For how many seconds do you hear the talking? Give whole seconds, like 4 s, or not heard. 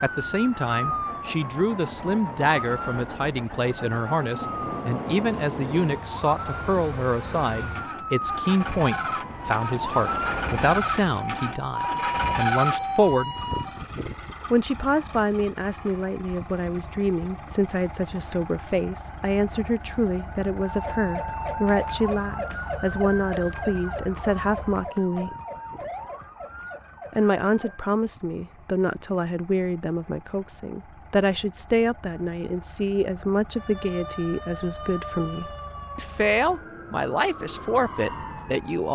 36 s.